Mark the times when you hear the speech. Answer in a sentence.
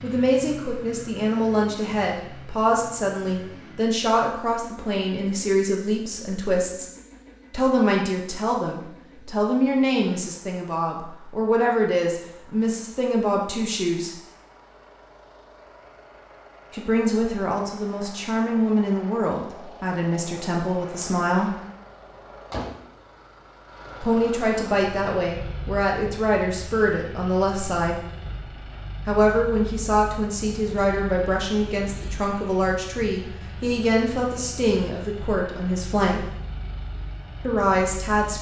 You can hear the speech from 0.0 to 6.9 s, from 7.5 to 14.2 s, from 16.7 to 21.6 s, from 24.0 to 28.1 s, from 29.1 to 36.2 s and from 37.5 to 38.3 s.